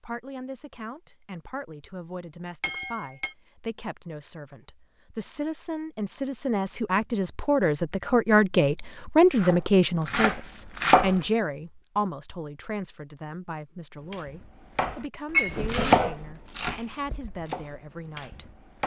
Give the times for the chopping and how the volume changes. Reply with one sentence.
The chopping can be heard briefly from 9.2 to 11.2 s; and from 13.9 to 18.8 s, getting louder then quieter.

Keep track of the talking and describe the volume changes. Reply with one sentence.
The loudness of the talking goes up, then down.